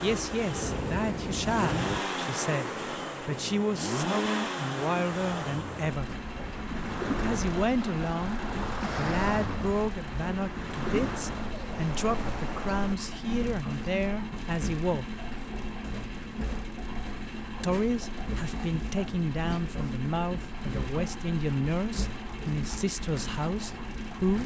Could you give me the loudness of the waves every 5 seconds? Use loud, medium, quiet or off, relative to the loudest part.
loud, loud, loud, off, off.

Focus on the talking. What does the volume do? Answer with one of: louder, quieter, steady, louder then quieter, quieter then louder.
steady.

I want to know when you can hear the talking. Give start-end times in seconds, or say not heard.
0.0-6.1, 7.2-15.1, 17.6-24.4.